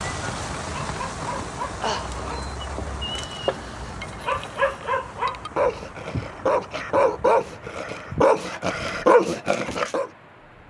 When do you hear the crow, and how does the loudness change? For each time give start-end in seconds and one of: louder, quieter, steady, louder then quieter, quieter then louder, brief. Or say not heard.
not heard.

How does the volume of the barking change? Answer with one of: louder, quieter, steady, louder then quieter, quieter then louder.
louder.